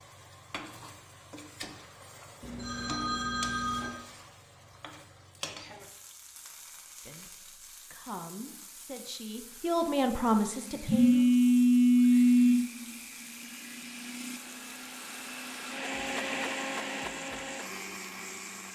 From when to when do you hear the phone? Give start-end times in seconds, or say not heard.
2.4-4.0, 10.8-12.7.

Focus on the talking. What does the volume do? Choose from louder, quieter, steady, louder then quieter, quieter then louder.
louder.